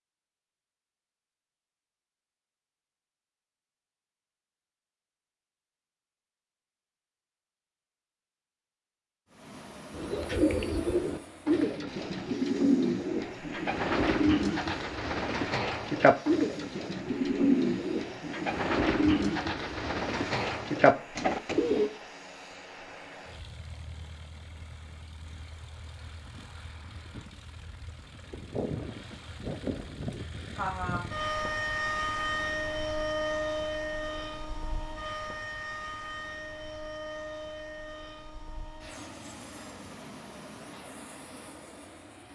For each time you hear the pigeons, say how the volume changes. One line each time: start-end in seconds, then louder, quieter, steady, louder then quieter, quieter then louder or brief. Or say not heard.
9.9-21.9 steady.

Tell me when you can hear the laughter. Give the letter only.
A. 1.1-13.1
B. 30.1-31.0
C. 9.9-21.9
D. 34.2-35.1
B.